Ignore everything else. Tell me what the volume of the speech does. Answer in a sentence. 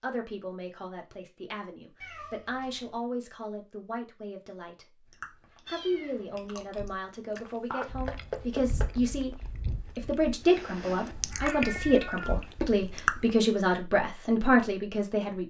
The loudness of the speech goes up.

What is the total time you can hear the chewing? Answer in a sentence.
The chewing can be heard for 8 seconds in total.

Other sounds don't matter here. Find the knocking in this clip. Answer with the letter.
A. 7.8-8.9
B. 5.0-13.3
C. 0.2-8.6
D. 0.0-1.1
A.